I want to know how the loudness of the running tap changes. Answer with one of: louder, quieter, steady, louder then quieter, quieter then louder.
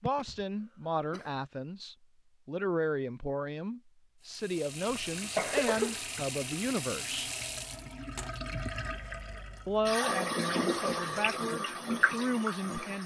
louder.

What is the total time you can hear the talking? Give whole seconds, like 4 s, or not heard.
11 s.